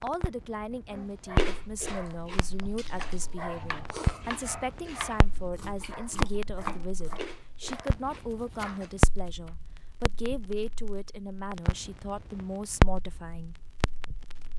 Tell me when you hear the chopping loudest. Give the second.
7 s.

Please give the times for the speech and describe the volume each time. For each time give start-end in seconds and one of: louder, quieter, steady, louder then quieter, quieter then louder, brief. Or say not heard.
0.0-13.6 steady.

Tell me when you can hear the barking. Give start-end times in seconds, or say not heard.
0.9-8.9.